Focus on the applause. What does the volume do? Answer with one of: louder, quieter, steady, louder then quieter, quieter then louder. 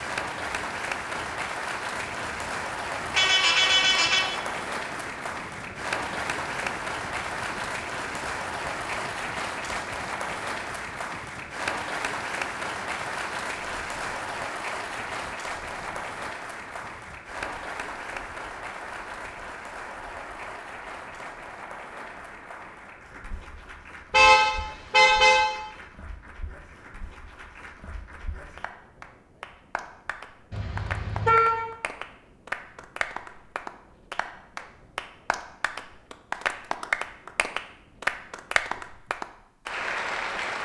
quieter then louder.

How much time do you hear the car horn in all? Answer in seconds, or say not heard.
4 s.